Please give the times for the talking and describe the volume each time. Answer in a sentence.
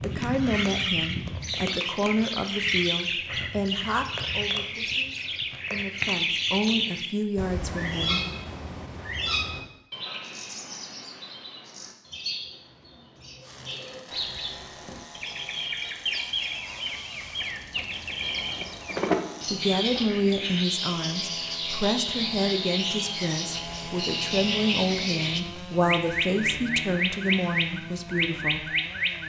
You can hear the talking from 0.0 to 8.2 s, getting quieter then louder; and from 19.4 to 28.7 s, at a steady volume.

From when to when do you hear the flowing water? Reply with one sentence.
You can't hear the flowing water here.